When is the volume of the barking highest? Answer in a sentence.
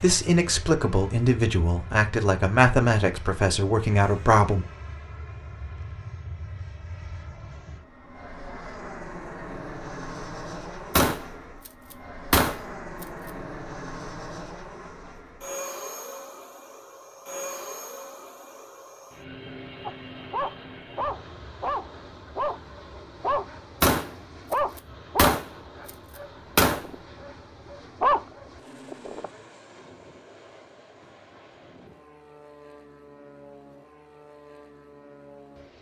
The loudest moment of the barking is at 28 seconds.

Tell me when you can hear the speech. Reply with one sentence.
The speech can be heard from 0.0 to 4.7 s.